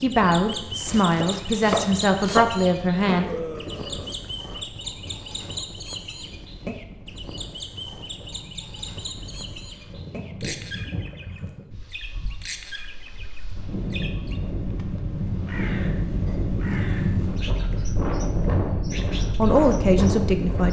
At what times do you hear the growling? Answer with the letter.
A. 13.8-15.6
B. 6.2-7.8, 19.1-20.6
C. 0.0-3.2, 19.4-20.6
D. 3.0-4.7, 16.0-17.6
D.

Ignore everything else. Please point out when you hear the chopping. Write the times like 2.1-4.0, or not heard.
0.8-2.6.